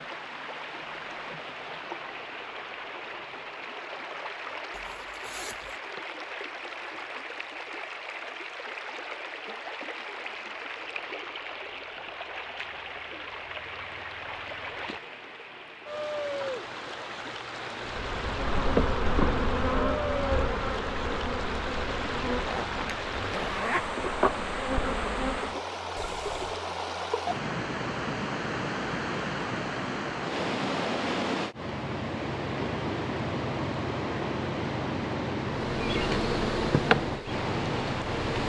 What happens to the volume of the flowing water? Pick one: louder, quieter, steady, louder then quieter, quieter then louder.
louder.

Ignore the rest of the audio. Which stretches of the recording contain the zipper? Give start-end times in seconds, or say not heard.
4.7-5.8, 22.4-23.9, 25.9-26.6.